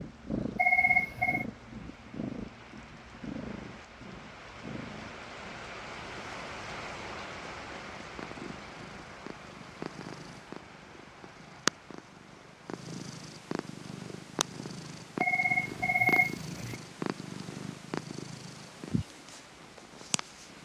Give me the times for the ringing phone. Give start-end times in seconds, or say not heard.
0.6-1.4, 15.2-16.8.